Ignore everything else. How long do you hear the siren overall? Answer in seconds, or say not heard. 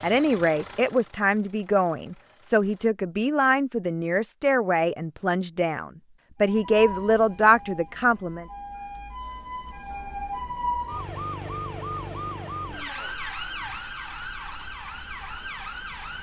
10 s.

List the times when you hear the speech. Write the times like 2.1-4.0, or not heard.
0.0-8.4.